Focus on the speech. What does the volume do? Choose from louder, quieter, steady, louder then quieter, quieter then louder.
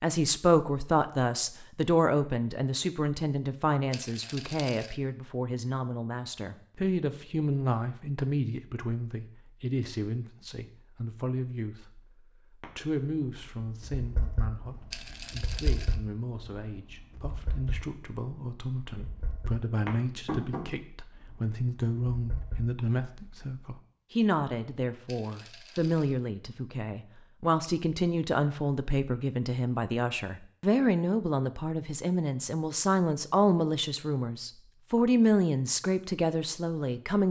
quieter then louder.